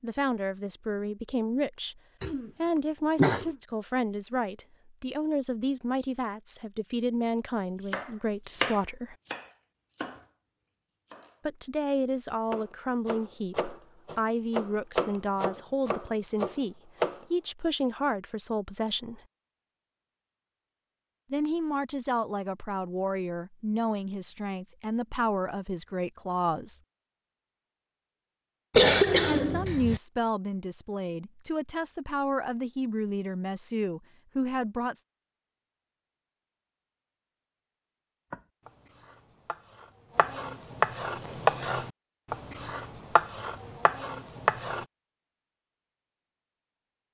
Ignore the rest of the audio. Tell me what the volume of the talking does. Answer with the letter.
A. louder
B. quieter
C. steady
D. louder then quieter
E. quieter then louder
C.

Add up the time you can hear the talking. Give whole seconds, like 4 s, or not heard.
28 s.